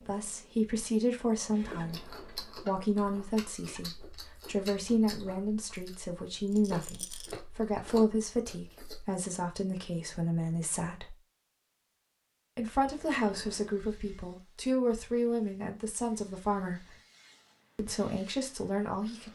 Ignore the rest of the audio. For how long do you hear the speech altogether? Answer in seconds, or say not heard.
17 s.